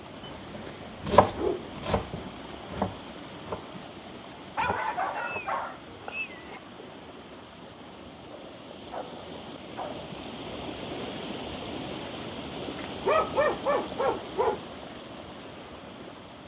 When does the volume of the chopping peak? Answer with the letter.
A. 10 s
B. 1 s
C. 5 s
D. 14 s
B.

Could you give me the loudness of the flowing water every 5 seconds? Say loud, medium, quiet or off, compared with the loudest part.
medium, medium, loud, medium.